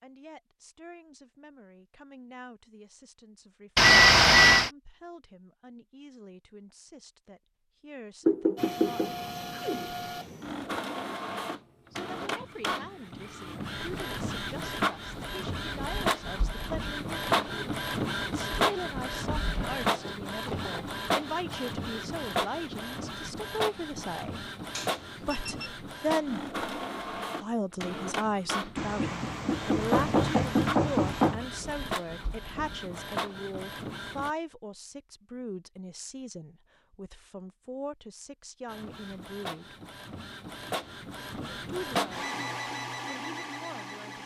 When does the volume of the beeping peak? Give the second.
4 s.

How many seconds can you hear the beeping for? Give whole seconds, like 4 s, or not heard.
2 s.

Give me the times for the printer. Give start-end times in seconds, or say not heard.
8.6-34.3, 38.6-44.2.